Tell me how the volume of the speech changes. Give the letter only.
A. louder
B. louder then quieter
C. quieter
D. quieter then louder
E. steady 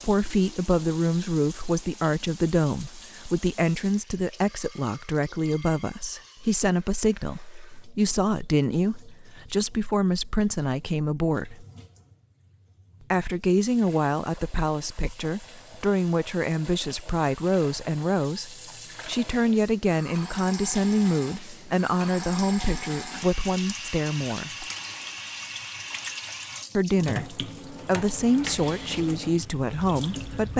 E.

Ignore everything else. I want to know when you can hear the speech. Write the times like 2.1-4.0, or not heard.
0.0-11.7, 13.1-24.6, 26.8-30.5.